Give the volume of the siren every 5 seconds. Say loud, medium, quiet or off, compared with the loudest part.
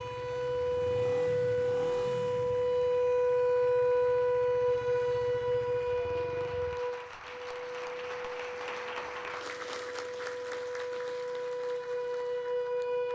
loud, medium, medium.